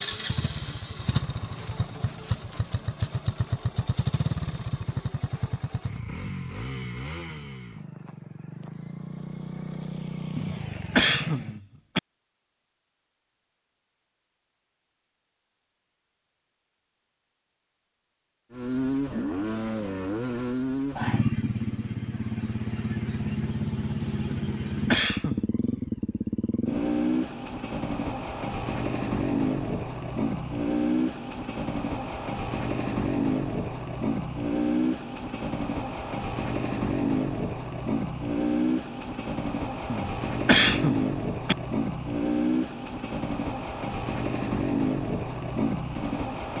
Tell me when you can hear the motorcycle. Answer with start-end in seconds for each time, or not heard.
0.0-11.6, 18.5-46.5.